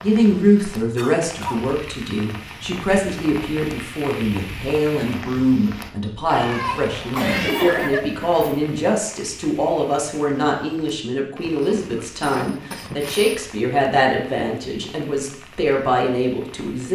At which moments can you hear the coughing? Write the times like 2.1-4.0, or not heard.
0.9-1.6, 7.1-8.5, 11.4-13.4.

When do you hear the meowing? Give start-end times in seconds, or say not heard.
6.3-7.8.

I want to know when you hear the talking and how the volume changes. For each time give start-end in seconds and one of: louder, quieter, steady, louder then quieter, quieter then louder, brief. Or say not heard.
0.0-16.9 steady.